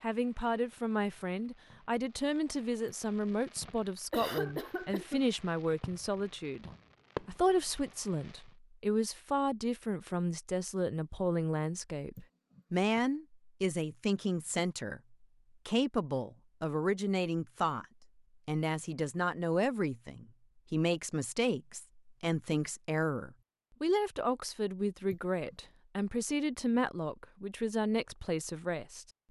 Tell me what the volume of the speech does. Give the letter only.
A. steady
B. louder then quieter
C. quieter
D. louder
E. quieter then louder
A.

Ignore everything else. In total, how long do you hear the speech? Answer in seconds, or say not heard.
29 s.